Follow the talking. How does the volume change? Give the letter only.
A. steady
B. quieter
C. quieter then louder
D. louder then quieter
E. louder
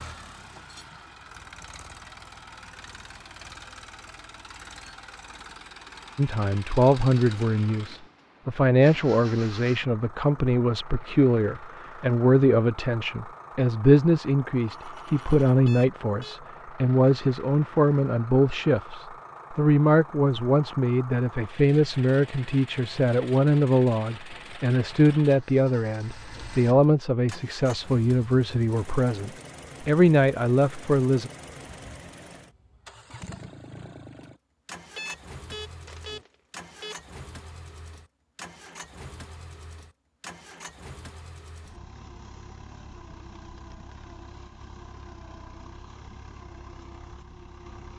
A.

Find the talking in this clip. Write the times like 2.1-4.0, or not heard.
6.2-31.3.